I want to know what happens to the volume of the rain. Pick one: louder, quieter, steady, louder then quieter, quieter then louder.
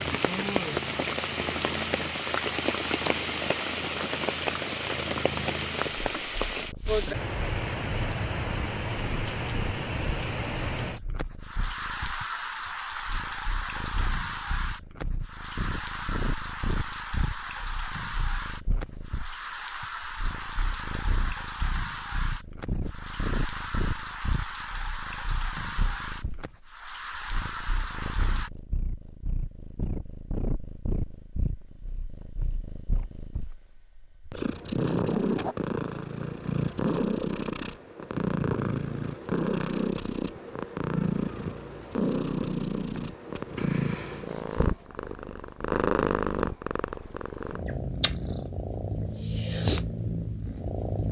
quieter.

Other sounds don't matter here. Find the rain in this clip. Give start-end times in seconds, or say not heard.
0.0-28.5.